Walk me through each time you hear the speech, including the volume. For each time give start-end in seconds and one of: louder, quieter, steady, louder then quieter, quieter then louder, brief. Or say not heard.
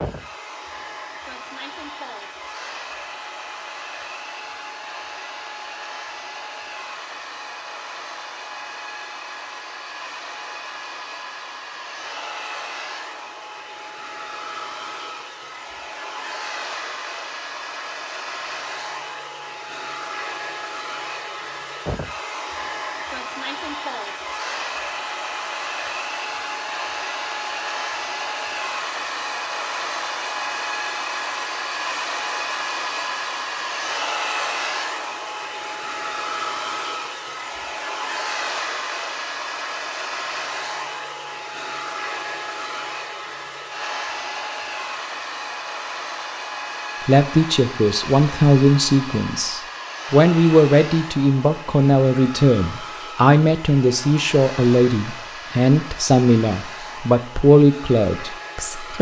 47.0-58.9 steady.